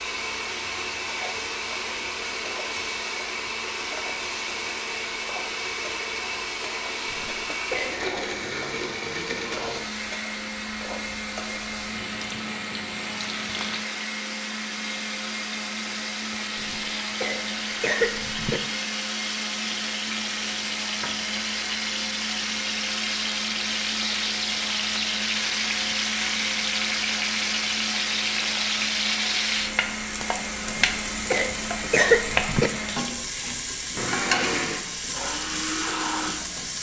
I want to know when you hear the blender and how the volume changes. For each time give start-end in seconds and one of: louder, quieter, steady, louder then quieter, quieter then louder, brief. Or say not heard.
0.0-36.7 steady.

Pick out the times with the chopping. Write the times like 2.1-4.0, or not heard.
not heard.